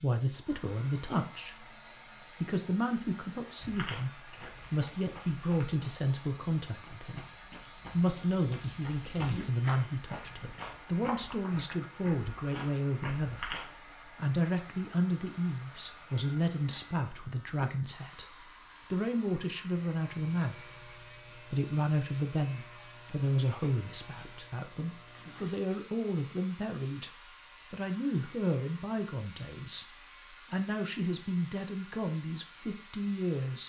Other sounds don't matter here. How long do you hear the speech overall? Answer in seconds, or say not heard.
32 s.